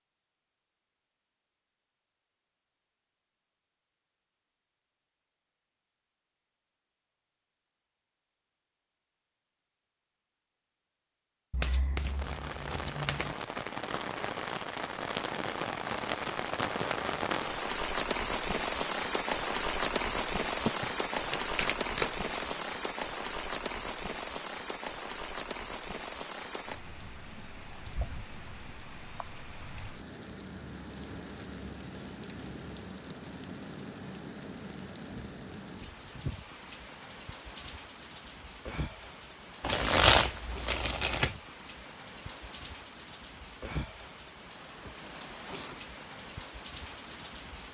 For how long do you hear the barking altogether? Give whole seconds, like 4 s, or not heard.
not heard.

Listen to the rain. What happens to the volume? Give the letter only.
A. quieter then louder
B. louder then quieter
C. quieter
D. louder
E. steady
C.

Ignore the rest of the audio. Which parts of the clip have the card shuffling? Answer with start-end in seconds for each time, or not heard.
11.5-13.3, 20.6-22.5, 39.6-41.4.